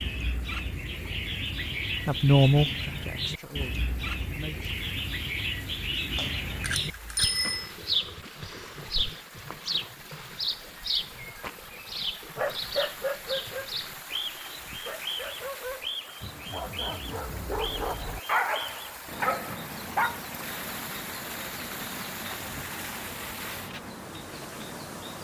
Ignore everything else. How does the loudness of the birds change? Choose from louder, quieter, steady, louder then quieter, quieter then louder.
quieter.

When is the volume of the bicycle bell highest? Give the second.
7 s.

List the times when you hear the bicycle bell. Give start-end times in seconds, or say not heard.
6.2-7.8.